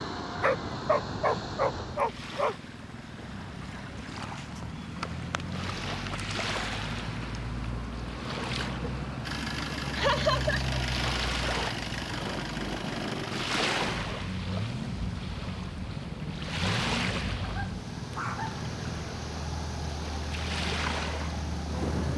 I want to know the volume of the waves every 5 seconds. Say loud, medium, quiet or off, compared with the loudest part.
medium, loud, loud, loud, loud.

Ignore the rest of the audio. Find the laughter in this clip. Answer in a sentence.
The laughter can be heard from 9.9 to 10.8 s.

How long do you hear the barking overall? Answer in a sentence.
The barking can be heard for 3 seconds in total.